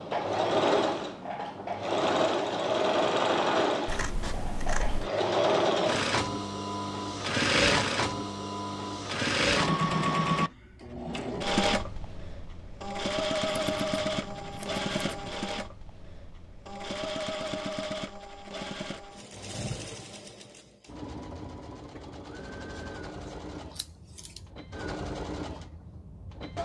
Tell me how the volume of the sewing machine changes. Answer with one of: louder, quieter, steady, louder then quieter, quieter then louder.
quieter.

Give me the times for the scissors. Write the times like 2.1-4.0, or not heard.
3.9-5.1, 13.4-15.3, 23.8-24.4.